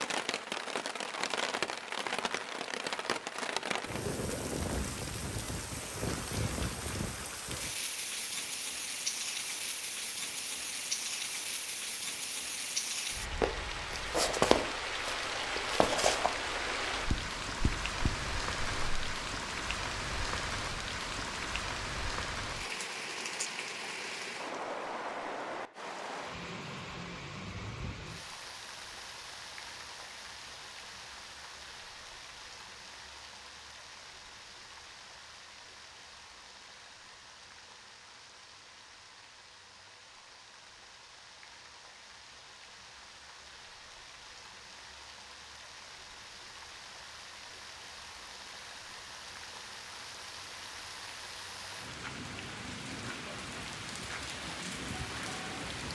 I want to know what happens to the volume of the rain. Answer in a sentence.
The volume of the rain goes down, then up.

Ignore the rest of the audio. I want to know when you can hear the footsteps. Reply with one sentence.
The footsteps can be heard from 13.4 to 18.9 s.